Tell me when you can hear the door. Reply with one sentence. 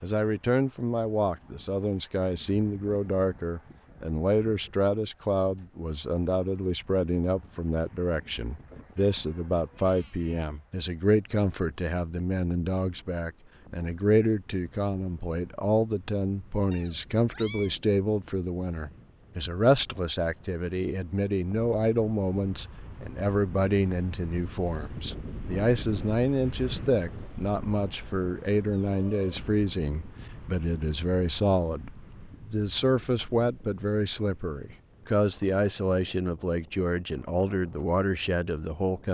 You can't hear the door here.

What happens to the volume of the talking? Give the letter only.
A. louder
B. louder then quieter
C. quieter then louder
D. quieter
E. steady
E.